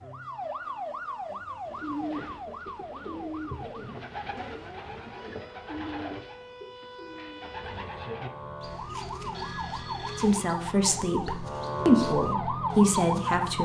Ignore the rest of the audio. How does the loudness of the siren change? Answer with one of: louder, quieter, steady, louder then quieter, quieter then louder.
quieter then louder.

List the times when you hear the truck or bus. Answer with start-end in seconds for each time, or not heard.
not heard.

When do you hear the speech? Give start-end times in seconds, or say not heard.
10.2-13.5.